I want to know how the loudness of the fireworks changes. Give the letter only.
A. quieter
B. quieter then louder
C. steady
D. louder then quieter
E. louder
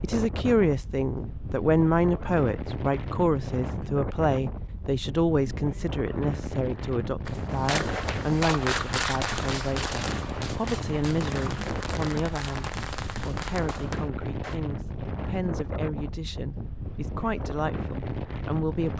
A.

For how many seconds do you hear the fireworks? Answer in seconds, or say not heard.
7 s.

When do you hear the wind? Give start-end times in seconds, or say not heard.
0.0-18.9.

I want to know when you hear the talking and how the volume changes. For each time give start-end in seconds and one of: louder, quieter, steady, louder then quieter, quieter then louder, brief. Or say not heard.
0.0-18.9 quieter.